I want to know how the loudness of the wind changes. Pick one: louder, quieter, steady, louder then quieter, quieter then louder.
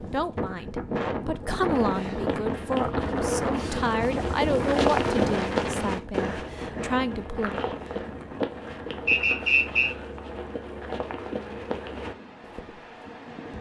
quieter.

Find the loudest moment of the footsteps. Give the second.
5 s.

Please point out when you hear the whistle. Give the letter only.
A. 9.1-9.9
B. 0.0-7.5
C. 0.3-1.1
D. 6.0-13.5
A.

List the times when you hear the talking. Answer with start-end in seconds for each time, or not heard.
0.0-7.5.